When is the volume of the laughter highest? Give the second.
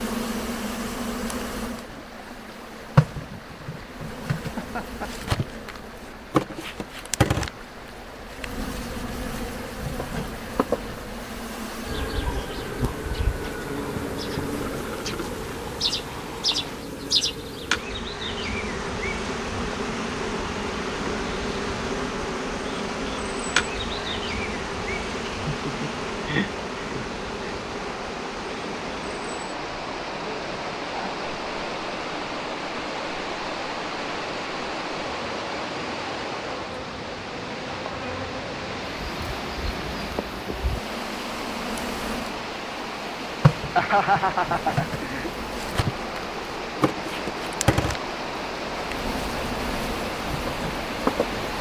44 s.